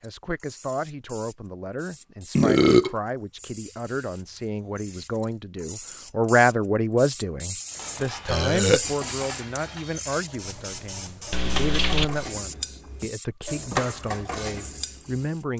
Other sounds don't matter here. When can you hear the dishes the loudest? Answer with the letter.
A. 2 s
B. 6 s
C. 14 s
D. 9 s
C.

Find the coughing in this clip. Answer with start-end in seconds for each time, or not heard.
11.3-12.2.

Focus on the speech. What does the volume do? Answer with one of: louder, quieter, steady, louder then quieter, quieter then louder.
louder then quieter.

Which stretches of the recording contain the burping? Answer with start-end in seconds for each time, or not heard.
2.4-3.0, 8.2-8.8.